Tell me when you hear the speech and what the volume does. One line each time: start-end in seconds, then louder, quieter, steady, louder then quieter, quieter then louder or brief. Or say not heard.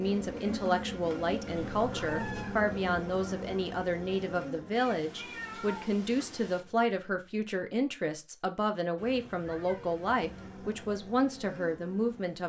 0.0-12.4 steady.